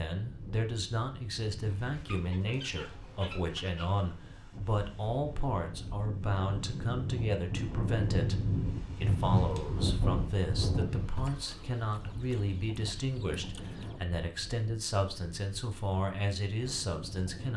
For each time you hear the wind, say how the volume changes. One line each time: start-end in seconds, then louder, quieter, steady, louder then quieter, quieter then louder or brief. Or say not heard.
0.1-17.5 louder then quieter.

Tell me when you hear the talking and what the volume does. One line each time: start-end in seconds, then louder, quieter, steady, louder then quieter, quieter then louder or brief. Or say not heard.
0.0-17.5 steady.